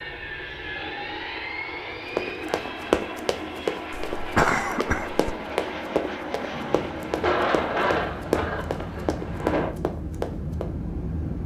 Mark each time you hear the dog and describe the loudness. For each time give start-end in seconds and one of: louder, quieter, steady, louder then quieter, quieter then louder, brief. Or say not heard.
not heard.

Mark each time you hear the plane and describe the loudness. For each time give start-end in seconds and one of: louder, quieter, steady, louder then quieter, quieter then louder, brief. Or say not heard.
0.0-11.4 steady.